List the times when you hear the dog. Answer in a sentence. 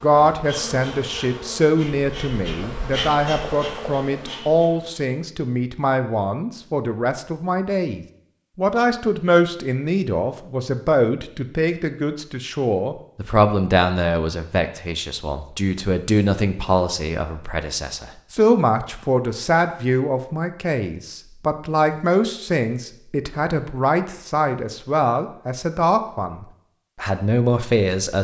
The dog can't be heard in this clip.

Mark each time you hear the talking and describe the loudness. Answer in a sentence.
The talking can be heard from 0.0 to 28.2 s, at a steady volume.